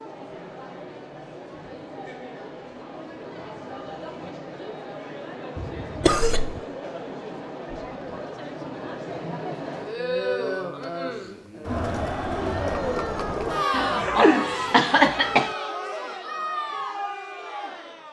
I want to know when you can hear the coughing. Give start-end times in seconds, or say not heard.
5.5-6.6, 13.7-15.6.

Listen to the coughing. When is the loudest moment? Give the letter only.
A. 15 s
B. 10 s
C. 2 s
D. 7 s
A.